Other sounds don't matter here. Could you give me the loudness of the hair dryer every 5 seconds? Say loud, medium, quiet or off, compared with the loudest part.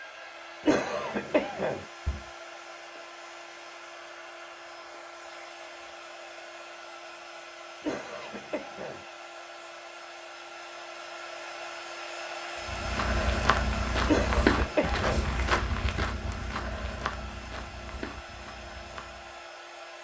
medium, medium, loud, medium.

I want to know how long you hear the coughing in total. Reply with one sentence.
The coughing can be heard for 4 seconds in total.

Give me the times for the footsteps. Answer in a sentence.
The footsteps can be heard from 12.7 to 19.4 s.